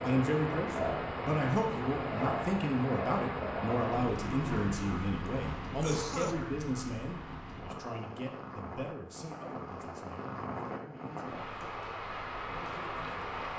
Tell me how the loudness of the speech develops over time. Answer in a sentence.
The volume of the speech goes down.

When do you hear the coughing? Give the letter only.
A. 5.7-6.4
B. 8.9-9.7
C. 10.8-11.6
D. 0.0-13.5
A.